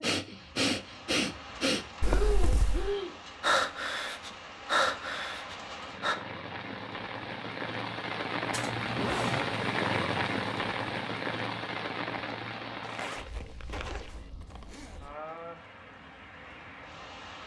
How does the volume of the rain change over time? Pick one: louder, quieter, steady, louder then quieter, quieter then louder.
louder then quieter.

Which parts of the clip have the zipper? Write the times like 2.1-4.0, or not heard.
2.0-3.0, 8.5-9.6, 12.8-15.0.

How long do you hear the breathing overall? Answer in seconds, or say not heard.
6 s.